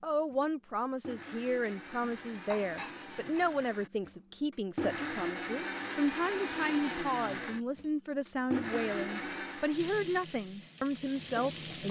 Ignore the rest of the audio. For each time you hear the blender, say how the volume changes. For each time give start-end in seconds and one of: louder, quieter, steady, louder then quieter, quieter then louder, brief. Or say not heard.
0.0-9.8 louder.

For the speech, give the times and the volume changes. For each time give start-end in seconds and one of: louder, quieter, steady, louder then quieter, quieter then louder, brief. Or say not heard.
0.0-11.8 steady.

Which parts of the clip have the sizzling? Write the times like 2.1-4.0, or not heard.
9.7-11.8.